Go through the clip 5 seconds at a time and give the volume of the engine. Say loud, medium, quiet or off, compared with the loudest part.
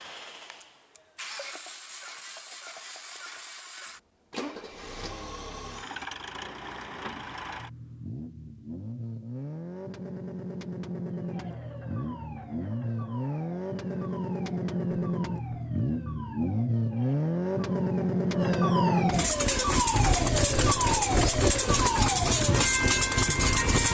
quiet, quiet, medium, loud, loud.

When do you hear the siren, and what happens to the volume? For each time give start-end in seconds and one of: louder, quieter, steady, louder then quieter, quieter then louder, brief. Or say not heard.
11.1-23.9 louder.